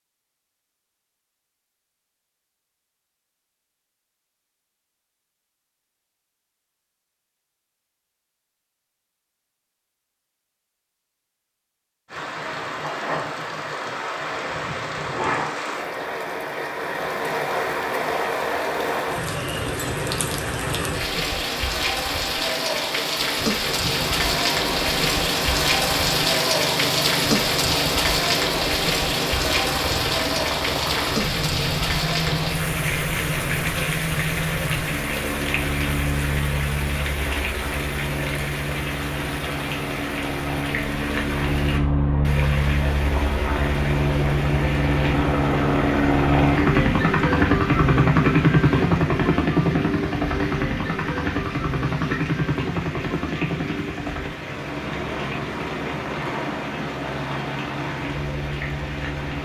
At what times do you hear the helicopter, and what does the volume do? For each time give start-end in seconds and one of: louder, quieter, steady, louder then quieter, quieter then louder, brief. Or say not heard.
23.6-59.3 louder then quieter.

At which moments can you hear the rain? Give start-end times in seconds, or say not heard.
12.1-59.3.